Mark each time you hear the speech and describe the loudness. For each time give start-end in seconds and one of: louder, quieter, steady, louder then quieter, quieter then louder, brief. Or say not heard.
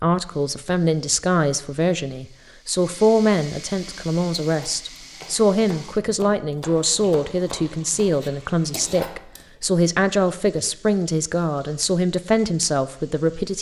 0.0-13.5 steady.